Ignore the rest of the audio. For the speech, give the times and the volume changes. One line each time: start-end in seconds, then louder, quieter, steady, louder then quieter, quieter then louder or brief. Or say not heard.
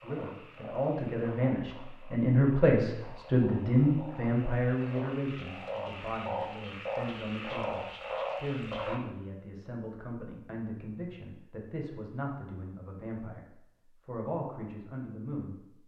0.0-15.8 quieter.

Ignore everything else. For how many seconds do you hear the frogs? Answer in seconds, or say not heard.
9 s.